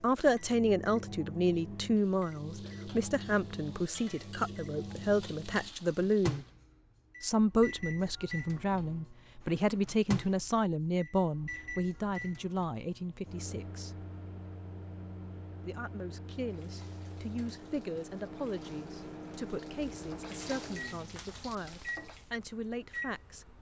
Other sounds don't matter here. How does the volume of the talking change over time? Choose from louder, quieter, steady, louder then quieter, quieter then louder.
quieter.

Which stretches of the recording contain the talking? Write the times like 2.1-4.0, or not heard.
0.0-6.5, 7.2-13.9, 15.6-23.5.